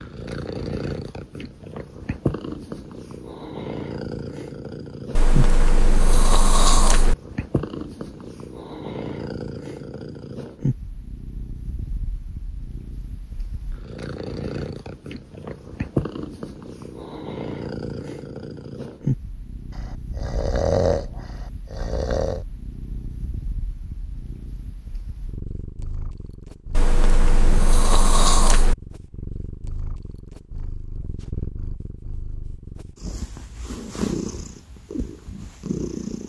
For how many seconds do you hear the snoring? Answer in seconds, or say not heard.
6 s.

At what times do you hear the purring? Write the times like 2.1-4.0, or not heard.
0.0-36.2.